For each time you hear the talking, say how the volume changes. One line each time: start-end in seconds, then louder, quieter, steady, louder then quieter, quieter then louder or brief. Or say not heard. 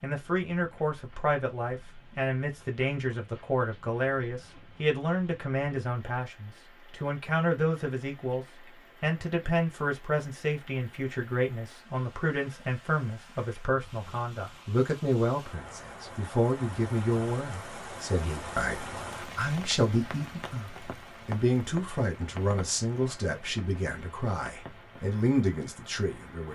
0.0-26.4 steady.